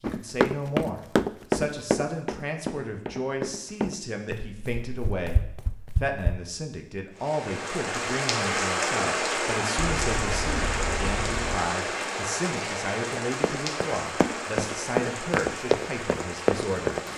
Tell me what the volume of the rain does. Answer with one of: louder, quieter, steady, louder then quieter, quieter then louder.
quieter.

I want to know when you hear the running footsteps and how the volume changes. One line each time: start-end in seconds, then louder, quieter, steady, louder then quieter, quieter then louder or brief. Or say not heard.
0.0-6.4 quieter
13.1-17.1 louder.